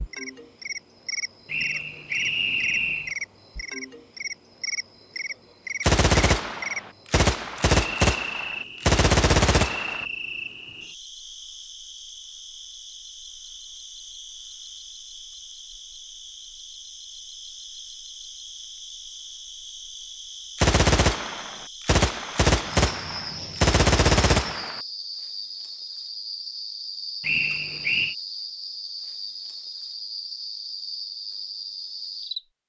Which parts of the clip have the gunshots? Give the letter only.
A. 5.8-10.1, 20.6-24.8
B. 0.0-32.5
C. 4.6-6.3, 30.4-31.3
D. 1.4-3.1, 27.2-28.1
A.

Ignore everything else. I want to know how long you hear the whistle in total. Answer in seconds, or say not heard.
3 s.